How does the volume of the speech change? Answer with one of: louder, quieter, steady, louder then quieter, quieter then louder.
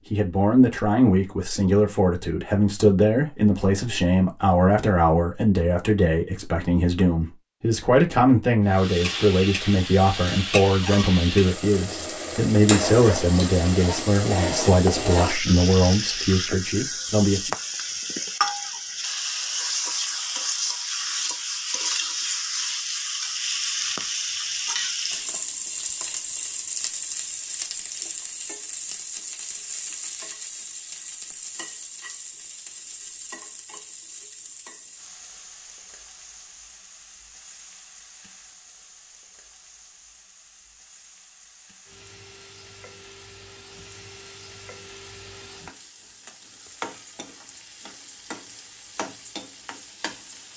steady.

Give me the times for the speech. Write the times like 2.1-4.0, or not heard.
0.1-17.5.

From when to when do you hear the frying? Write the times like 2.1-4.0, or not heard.
8.7-50.5.